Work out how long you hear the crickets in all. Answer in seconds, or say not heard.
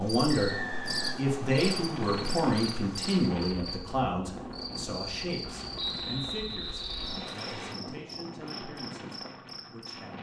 10 s.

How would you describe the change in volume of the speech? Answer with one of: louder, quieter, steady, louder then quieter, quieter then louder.
quieter.